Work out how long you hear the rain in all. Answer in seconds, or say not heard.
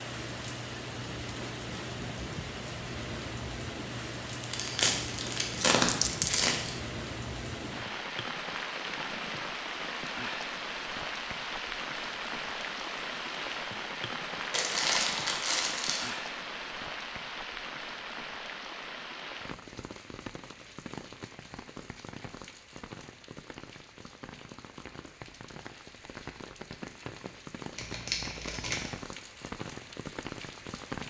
31 s.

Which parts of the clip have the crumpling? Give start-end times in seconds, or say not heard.
4.4-6.8, 14.5-16.1, 27.8-28.9.